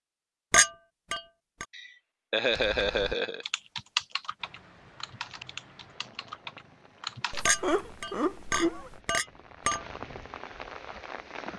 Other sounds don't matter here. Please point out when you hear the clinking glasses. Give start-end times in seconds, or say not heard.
0.5-1.6, 7.5-9.8.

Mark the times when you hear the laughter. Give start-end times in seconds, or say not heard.
1.7-3.5, 7.3-9.0.